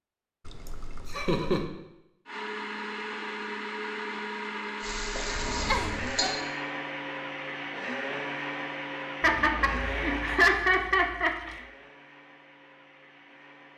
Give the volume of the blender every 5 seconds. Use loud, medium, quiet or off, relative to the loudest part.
loud, loud, medium.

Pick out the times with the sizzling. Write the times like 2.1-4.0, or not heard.
4.8-6.3.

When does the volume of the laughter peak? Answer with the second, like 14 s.
11 s.